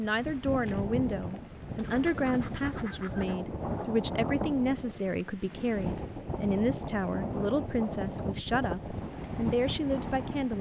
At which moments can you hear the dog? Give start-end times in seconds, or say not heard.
not heard.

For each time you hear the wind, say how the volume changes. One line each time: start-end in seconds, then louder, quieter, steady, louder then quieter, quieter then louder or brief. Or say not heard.
0.0-10.5 steady.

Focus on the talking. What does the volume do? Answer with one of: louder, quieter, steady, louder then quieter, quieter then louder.
steady.